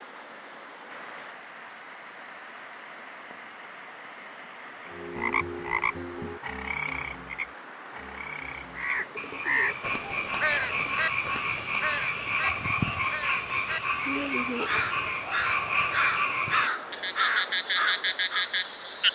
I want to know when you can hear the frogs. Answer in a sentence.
You can hear the frogs from 4.8 to 19.0 s.